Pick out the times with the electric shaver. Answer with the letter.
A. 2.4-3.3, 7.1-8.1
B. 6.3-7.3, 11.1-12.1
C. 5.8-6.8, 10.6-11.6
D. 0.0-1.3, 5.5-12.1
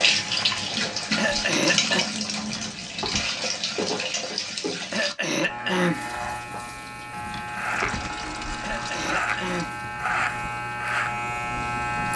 D.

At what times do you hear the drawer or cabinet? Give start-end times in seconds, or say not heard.
2.4-3.3, 7.1-8.1.